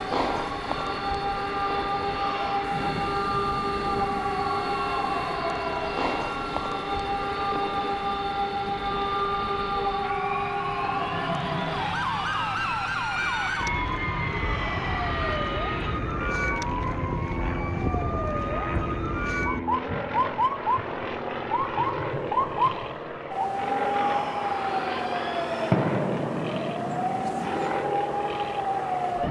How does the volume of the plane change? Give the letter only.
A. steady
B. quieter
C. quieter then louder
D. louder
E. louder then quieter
A.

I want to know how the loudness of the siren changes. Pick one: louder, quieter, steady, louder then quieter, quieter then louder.
steady.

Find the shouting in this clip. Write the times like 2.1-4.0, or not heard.
2.1-2.7, 14.2-15.4, 23.8-25.8.